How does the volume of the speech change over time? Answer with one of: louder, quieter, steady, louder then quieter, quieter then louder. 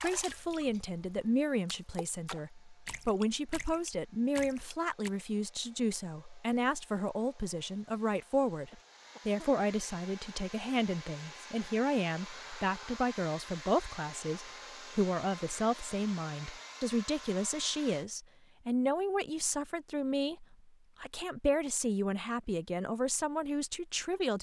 steady.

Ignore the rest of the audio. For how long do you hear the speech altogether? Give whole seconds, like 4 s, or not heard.
24 s.